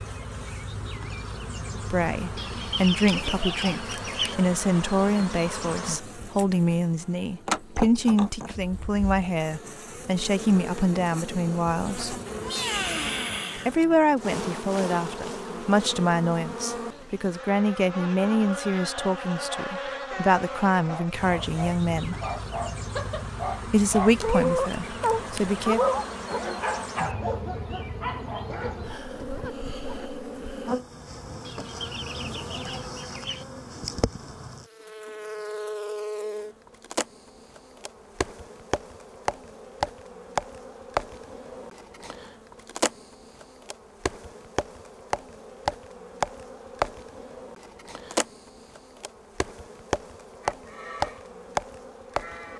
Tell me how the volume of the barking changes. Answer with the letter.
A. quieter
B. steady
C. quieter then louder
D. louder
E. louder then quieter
E.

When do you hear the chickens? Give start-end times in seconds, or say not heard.
2.4-4.4, 31.4-33.5.